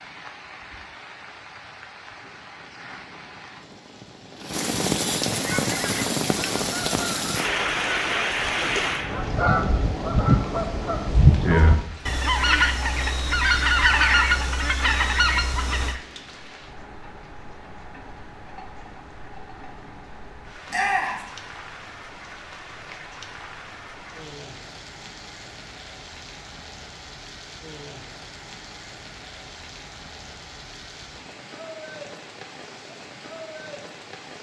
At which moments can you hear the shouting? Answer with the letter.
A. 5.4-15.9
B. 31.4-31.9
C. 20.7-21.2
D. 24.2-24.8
C.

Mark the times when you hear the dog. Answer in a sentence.
You can't hear the dog here.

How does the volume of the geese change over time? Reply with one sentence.
The volume of the geese goes up.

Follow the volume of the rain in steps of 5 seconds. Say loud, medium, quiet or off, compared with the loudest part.
medium, loud, quiet, quiet, quiet, quiet, quiet.